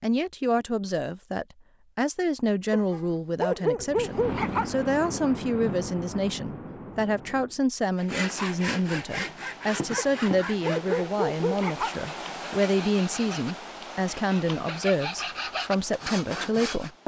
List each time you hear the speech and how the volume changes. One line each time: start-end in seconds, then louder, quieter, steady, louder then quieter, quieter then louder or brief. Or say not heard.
0.0-17.0 steady.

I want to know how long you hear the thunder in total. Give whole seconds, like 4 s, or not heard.
4 s.